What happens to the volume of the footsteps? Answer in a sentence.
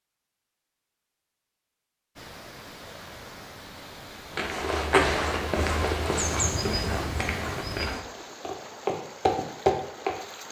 The volume of the footsteps goes down, then up.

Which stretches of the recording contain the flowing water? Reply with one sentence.
The flowing water can be heard from 2.1 to 10.4 s.